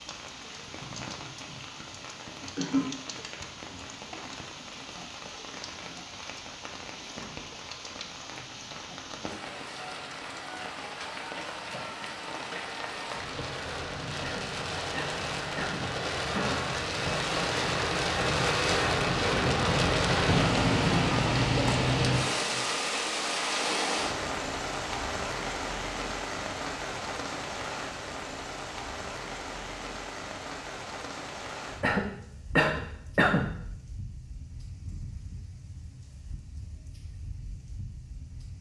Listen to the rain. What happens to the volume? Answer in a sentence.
The volume of the rain goes up, then down.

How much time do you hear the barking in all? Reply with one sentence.
The barking can't be heard in this clip.